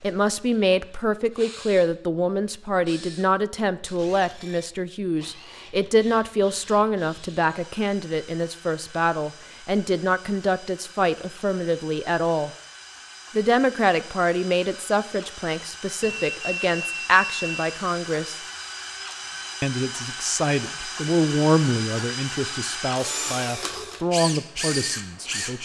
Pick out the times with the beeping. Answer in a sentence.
The beeping can be heard from 16.0 to 17.5 s.